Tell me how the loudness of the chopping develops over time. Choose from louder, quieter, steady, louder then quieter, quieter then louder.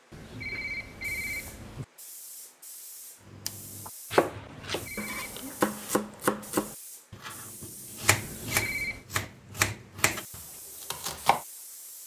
quieter then louder.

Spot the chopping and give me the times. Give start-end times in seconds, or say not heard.
3.2-11.4.